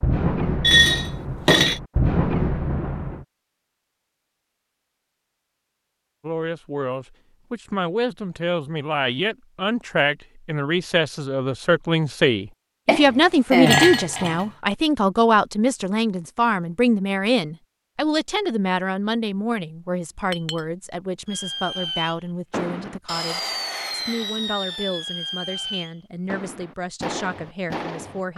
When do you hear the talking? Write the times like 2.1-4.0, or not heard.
6.2-28.3.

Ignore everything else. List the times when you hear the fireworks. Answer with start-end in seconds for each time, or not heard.
0.0-3.2, 21.2-28.3.